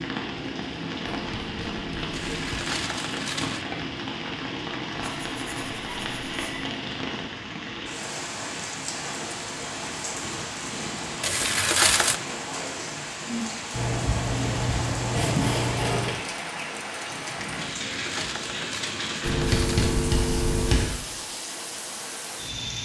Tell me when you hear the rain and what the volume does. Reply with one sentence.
You can hear the rain from 0.0 to 22.7 s, at a steady volume.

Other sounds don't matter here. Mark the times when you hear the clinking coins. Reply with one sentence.
The clinking coins can be heard from 2.1 to 3.6 s, from 11.2 to 12.2 s and from 17.7 to 19.9 s.